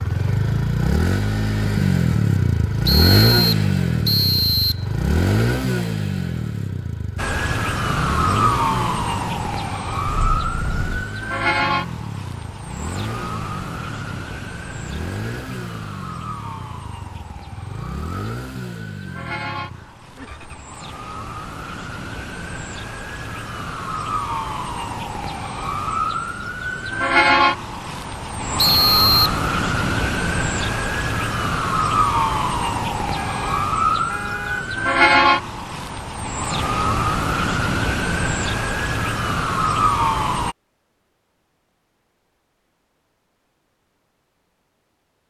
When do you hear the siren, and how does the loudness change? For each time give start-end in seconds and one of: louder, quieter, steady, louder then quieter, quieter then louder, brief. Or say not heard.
7.2-40.5 quieter then louder.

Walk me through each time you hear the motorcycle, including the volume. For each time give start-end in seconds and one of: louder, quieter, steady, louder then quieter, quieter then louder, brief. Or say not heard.
0.0-20.6 quieter.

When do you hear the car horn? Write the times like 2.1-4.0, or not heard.
10.1-11.1, 33.1-34.6.